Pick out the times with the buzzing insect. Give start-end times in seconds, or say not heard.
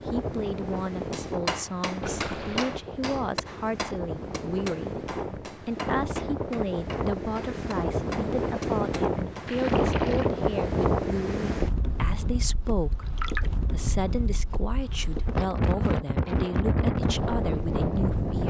not heard.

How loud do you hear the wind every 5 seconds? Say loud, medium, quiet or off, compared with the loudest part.
medium, loud, loud, loud.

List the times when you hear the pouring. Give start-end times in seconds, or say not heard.
2.0-2.8, 9.4-10.3, 12.9-13.5.